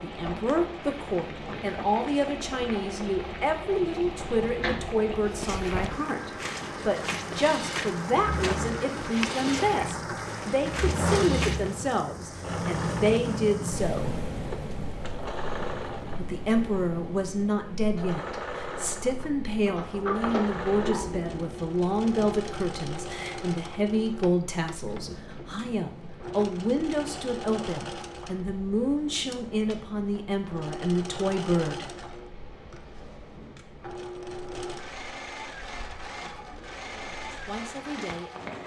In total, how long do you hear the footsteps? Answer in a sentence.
You can hear the footsteps for 7 seconds altogether.